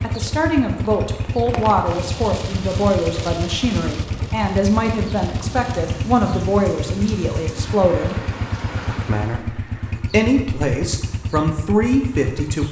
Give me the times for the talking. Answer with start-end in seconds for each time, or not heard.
0.0-8.2, 8.9-12.6.